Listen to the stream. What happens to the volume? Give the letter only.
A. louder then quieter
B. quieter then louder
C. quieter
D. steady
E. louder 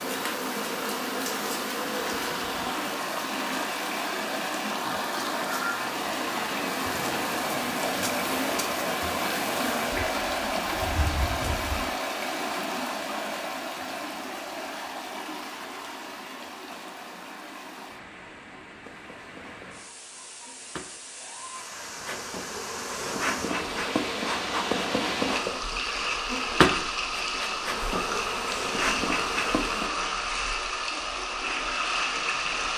B.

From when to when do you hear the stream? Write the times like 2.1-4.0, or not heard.
0.0-32.7.